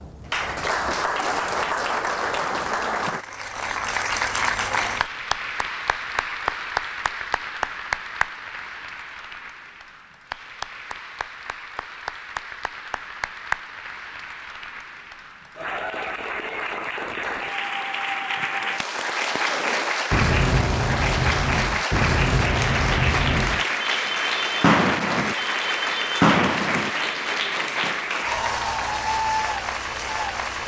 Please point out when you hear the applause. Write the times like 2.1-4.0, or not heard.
0.0-30.6.